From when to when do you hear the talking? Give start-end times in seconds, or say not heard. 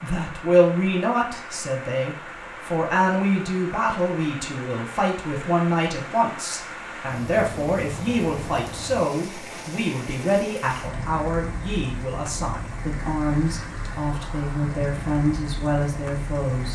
0.0-16.7.